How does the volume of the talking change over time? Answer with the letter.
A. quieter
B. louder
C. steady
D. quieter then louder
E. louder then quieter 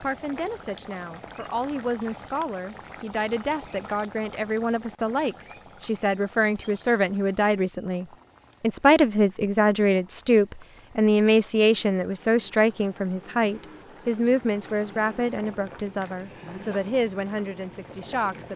E.